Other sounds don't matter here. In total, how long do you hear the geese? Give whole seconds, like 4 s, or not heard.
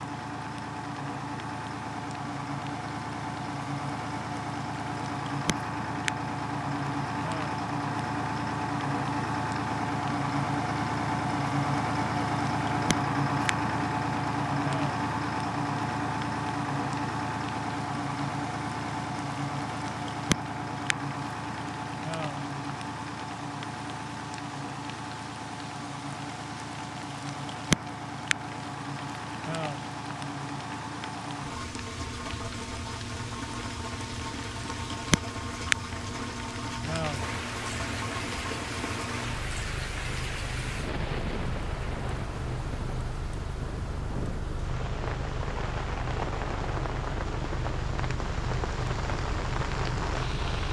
not heard.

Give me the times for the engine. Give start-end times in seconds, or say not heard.
0.0-50.6.